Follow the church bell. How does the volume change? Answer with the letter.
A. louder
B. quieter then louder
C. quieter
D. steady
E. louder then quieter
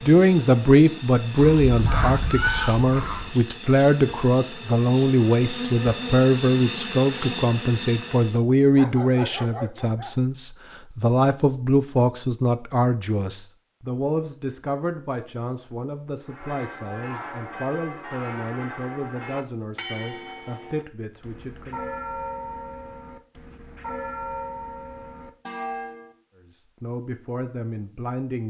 D.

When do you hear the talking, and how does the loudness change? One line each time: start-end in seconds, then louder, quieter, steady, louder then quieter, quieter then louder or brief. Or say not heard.
0.0-21.9 quieter
26.5-28.4 brief.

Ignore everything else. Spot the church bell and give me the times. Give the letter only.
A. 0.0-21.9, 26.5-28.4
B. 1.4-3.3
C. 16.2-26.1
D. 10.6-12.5
C.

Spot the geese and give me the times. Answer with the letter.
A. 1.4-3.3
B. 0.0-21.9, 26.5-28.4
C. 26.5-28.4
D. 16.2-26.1
A.